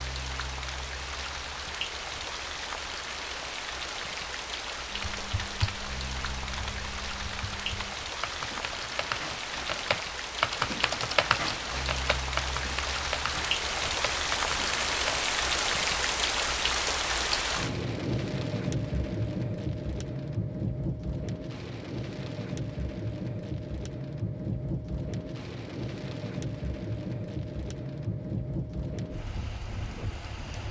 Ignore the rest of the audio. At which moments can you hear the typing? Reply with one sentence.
The typing can be heard from 4.9 to 15.2 s.